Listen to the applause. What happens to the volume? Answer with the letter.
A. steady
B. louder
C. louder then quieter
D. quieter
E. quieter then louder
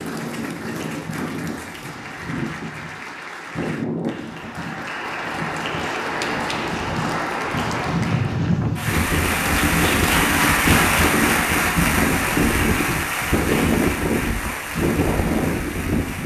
C.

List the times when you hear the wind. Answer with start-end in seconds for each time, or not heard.
0.0-16.2.